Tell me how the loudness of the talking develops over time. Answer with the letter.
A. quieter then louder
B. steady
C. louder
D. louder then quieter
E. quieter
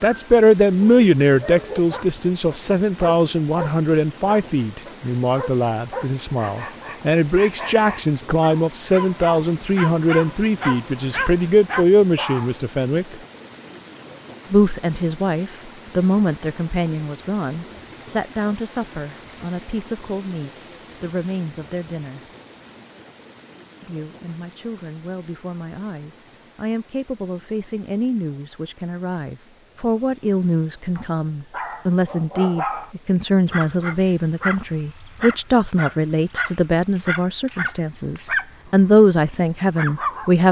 A.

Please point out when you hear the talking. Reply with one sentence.
The talking can be heard from 0.0 to 13.2 s, from 14.5 to 22.2 s and from 23.8 to 40.4 s.